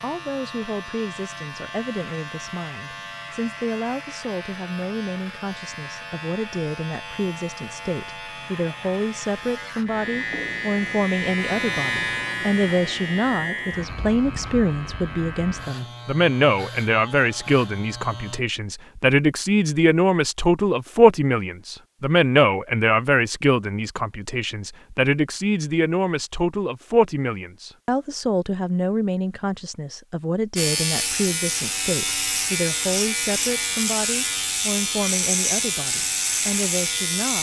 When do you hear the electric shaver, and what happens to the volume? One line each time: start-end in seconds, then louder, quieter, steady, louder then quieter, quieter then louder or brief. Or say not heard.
0.0-18.4 louder then quieter
30.6-37.3 steady.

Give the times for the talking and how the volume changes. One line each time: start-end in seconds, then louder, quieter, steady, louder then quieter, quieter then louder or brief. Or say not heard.
0.0-37.3 louder then quieter.